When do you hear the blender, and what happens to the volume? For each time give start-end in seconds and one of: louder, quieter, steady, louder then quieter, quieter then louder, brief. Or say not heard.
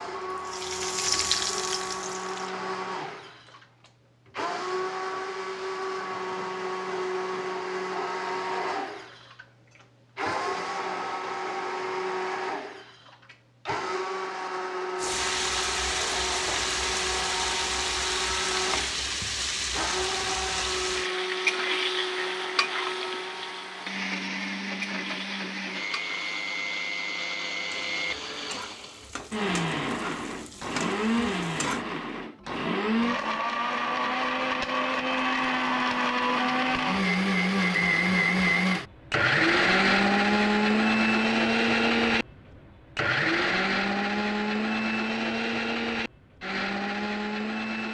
0.0-47.8 louder.